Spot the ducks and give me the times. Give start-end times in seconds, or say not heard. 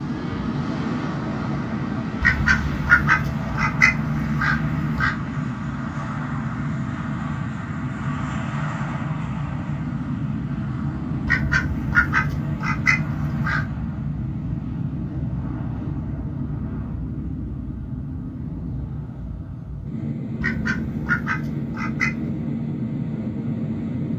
2.2-5.2, 11.2-13.7, 20.4-22.4.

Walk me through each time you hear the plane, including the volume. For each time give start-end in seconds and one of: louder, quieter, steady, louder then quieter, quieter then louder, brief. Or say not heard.
0.0-24.1 steady.